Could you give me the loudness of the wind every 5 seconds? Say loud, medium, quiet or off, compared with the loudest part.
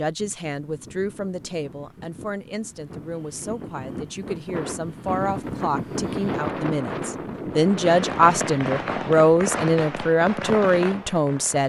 medium, loud, off.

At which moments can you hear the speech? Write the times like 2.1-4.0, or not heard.
0.0-11.6.